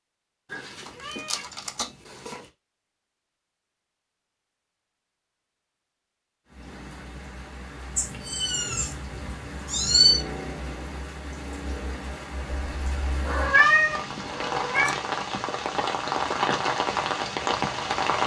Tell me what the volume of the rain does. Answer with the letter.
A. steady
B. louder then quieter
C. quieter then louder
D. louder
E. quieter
D.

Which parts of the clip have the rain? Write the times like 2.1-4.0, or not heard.
6.5-18.2.